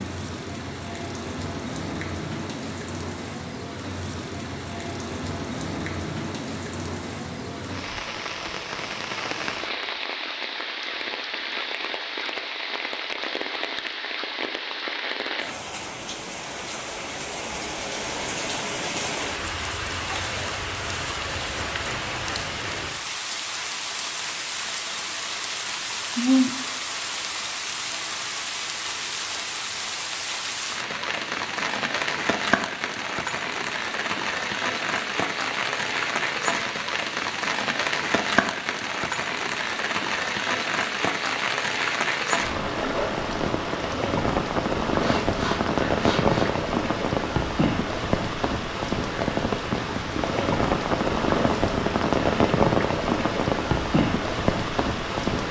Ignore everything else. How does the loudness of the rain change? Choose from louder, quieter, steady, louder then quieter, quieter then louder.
louder.